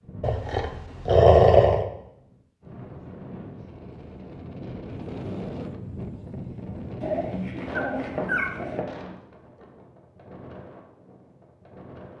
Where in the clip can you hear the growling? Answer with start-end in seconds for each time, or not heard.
0.2-1.9, 7.0-8.8.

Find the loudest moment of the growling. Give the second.
1 s.